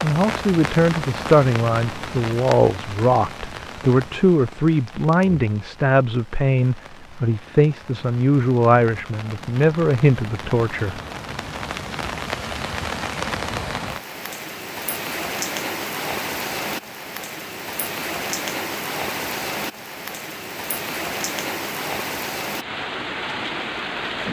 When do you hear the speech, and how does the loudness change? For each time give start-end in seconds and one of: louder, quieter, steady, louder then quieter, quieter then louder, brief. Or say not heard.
0.0-11.0 steady.